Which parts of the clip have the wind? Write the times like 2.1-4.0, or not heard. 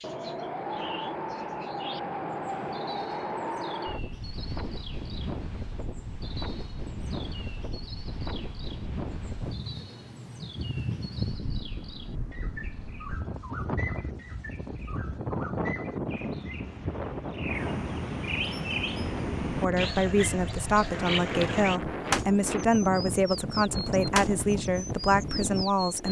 0.0-26.0.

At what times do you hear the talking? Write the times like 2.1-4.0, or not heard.
19.6-26.0.